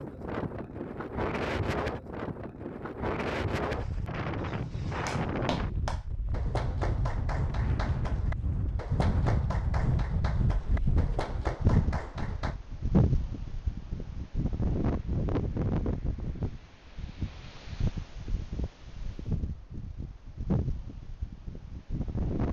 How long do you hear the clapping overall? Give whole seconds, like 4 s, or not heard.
8 s.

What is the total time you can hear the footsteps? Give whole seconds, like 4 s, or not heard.
not heard.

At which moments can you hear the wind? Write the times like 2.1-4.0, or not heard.
0.0-22.4.